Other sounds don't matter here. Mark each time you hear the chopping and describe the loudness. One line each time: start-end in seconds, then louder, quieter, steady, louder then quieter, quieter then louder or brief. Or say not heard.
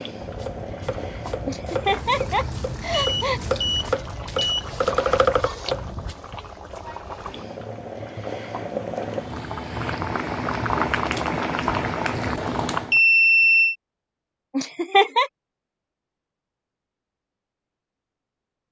0.2-6.2 louder.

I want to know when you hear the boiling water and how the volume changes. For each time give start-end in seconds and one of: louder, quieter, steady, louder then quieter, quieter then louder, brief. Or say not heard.
0.0-13.0 louder.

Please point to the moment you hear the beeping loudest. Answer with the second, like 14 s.
13 s.